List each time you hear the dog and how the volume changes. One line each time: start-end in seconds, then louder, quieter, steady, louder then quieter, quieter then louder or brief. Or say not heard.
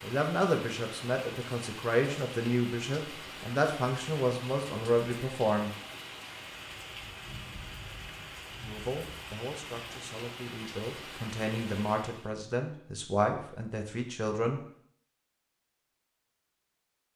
not heard.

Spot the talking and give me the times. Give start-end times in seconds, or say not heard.
0.0-5.7, 8.6-14.6.